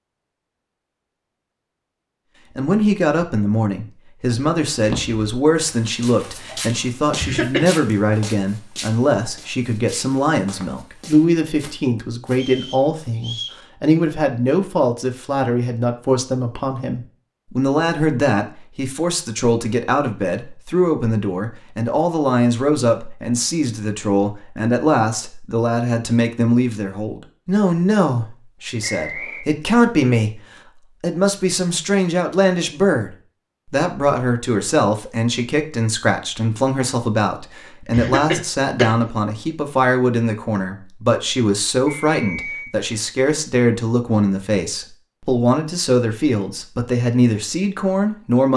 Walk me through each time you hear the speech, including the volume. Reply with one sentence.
You can hear the speech from 2.5 to 48.5 s, at a steady volume.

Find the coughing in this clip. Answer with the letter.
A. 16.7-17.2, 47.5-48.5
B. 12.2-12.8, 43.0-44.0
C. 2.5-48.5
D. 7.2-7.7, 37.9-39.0
D.